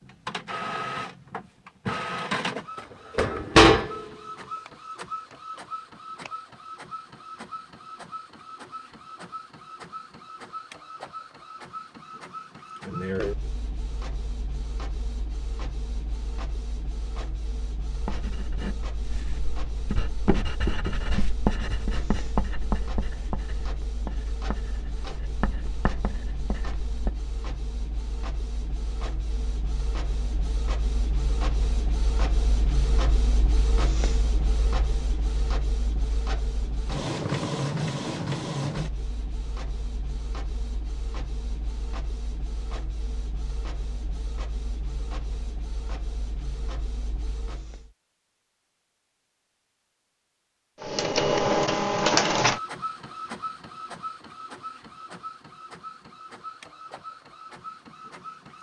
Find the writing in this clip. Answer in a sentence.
The writing can be heard from 17.9 to 27.1 s.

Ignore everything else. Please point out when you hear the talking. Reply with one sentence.
You can't hear the talking here.